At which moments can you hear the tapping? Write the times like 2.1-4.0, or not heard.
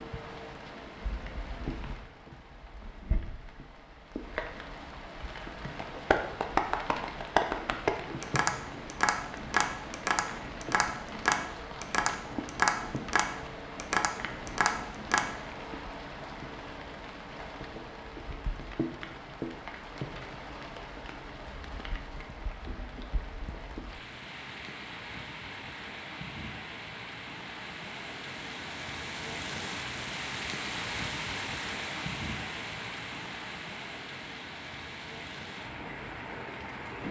5.8-15.3.